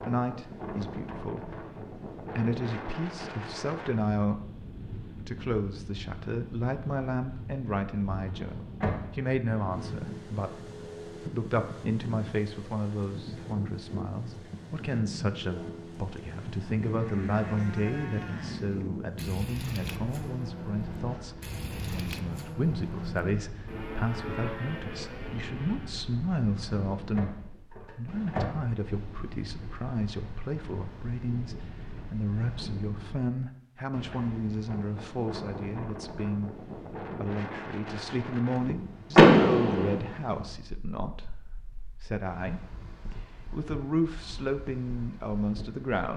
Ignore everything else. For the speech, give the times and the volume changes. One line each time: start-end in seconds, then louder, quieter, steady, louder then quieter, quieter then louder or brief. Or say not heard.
0.1-46.1 steady.